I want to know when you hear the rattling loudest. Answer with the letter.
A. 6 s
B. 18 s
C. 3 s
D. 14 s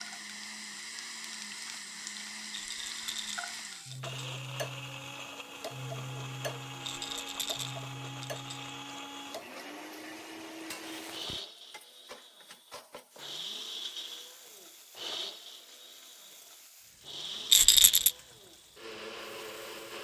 B.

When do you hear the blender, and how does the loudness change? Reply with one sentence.
The blender can be heard from 0.0 to 19.9 s, at a steady volume.